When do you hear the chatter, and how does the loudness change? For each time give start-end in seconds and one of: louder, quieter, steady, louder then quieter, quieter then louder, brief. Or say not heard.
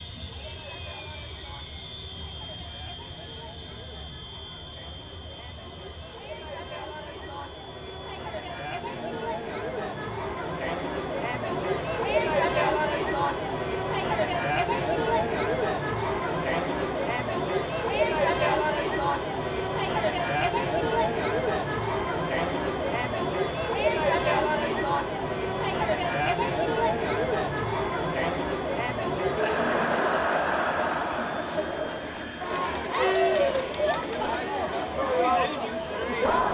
0.0-36.4 louder.